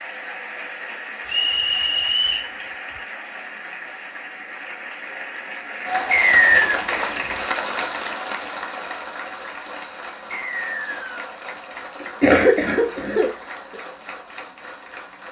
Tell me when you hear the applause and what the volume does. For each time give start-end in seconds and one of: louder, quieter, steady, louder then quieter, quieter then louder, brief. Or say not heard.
0.0-15.2 louder then quieter.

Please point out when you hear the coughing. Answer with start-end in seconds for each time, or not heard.
12.0-13.8.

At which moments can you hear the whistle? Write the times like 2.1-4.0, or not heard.
1.2-2.5, 6.1-6.5, 10.3-11.3.